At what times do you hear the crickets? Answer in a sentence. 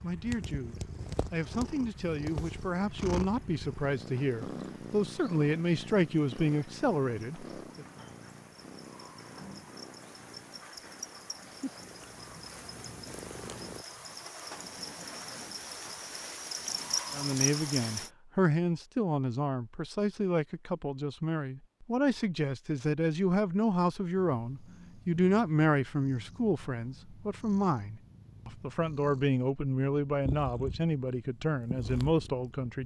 The crickets can be heard from 0.0 to 18.1 s.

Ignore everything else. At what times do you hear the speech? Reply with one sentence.
The speech can be heard from 0.0 to 7.8 s and from 17.1 to 32.8 s.